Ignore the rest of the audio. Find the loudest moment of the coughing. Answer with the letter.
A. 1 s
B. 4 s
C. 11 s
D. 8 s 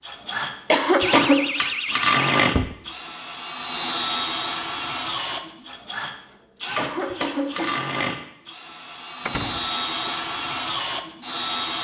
A.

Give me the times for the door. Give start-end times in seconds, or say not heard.
1.0-2.8, 9.2-10.1.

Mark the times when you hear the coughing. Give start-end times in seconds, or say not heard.
0.7-1.5, 6.8-7.8.